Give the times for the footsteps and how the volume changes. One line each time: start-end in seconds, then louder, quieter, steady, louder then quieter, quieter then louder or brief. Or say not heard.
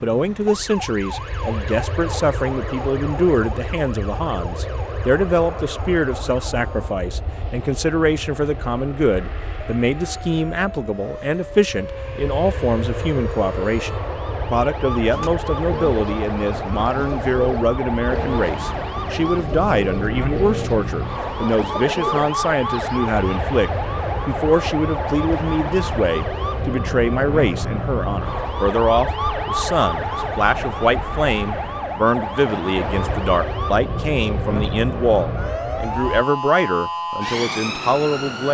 not heard.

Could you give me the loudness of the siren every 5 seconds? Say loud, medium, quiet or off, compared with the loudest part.
medium, quiet, medium, loud, loud, loud, loud, loud.